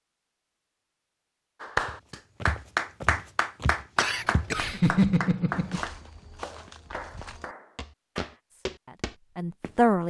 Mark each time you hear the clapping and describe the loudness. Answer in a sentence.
You can hear the clapping from 1.6 to 8.3 s, getting quieter.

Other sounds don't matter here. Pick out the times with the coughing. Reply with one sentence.
The coughing can be heard from 4.0 to 5.8 s.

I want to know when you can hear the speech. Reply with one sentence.
The speech can be heard from 8.5 to 10.0 s.